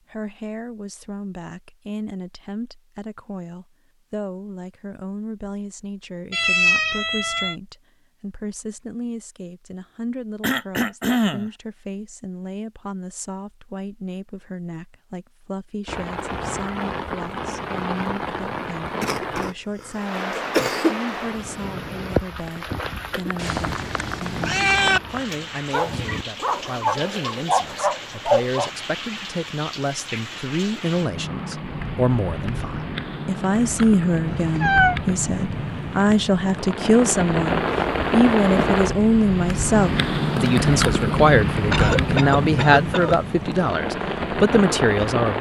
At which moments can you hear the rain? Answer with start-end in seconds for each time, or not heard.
15.8-45.3.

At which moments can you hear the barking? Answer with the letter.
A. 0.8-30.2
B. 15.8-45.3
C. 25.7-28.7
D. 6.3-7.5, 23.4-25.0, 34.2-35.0
C.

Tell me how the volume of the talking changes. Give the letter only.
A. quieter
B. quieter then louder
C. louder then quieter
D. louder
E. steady
D.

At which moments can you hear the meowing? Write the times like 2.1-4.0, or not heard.
6.3-7.5, 23.4-25.0, 34.2-35.0.